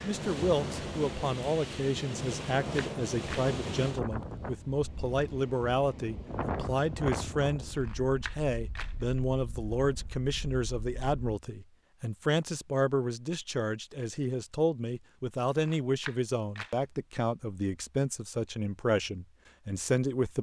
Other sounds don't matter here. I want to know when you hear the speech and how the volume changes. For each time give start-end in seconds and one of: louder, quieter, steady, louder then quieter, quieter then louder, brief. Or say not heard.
0.0-20.3 steady.